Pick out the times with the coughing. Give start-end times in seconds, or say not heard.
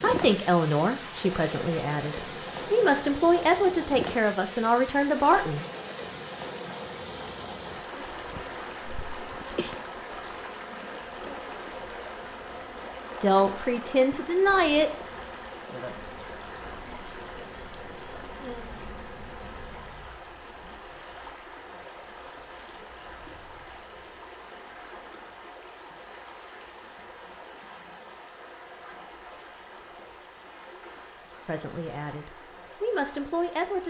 8.3-9.8.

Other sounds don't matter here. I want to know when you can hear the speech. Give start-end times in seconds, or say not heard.
0.0-5.7, 13.2-14.9, 31.4-33.8.